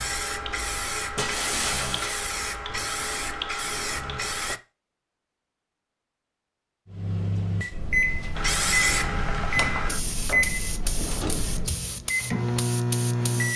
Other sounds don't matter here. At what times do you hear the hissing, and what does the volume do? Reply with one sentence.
The hissing can be heard from 0.0 to 4.6 s, at a steady volume; and from 8.3 to 13.5 s, getting quieter.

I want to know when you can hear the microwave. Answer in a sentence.
The microwave can be heard from 6.8 to 13.5 s.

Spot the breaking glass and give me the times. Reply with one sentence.
You can hear the breaking glass from 1.1 to 2.2 s.